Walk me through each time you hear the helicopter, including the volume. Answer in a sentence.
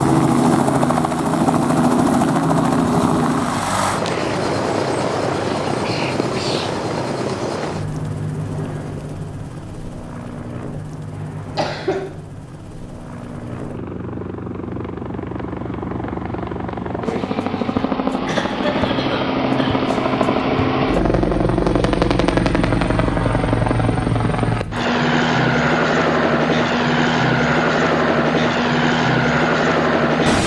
The helicopter can be heard from 0.0 to 30.4 s, getting quieter then louder.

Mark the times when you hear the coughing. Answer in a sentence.
The coughing can be heard from 11.1 to 12.0 s and from 18.2 to 19.9 s.